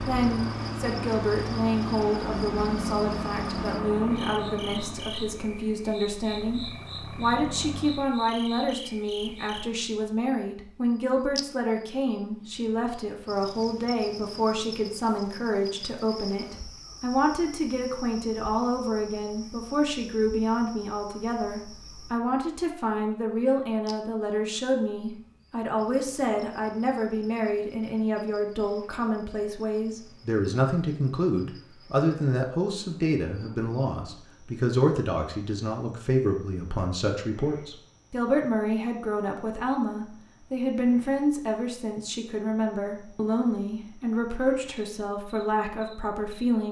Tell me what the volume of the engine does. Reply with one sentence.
The volume of the engine goes down.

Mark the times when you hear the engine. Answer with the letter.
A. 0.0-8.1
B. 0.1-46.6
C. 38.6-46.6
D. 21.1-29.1
A.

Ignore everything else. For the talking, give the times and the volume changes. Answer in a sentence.
You can hear the talking from 0.1 to 46.6 s, at a steady volume.